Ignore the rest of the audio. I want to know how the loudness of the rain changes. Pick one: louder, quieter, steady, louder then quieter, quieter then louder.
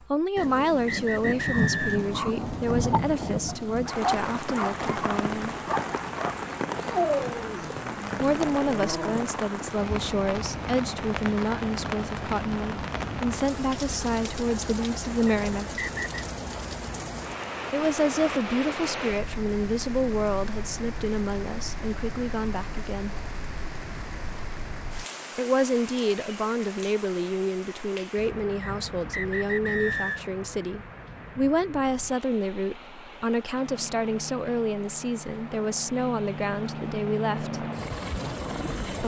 quieter.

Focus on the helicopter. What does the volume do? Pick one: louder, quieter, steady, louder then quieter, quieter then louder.
louder.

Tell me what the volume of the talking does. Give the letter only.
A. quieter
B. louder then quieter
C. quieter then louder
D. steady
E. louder
D.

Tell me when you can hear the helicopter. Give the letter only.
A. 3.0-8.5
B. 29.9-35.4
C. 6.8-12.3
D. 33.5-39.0
D.